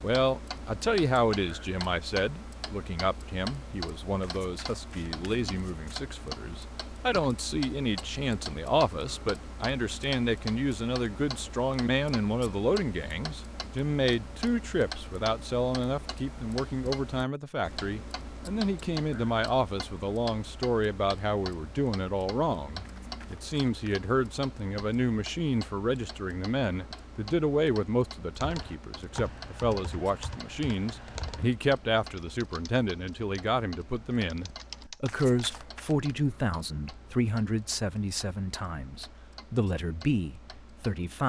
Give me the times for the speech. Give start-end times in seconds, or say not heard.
0.0-41.2.